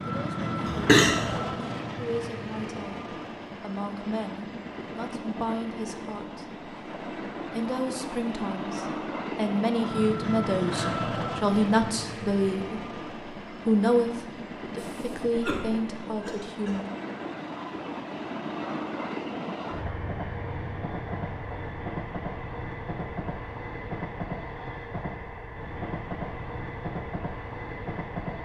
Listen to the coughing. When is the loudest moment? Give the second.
1 s.